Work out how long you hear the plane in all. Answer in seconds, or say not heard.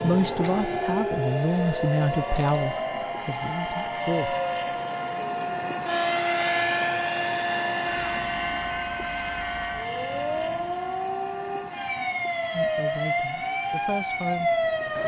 15 s.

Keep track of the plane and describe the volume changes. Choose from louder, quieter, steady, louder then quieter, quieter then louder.
louder then quieter.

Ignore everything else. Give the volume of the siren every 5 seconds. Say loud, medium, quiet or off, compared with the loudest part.
loud, medium, loud.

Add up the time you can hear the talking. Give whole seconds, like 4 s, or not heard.
7 s.